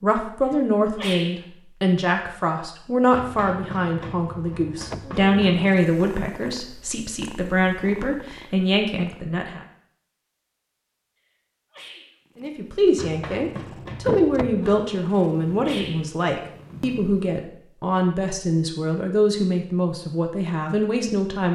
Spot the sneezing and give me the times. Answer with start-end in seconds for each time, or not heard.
0.9-1.4, 11.7-12.1, 15.6-16.0.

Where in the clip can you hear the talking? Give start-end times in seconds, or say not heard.
0.0-9.7, 12.3-21.5.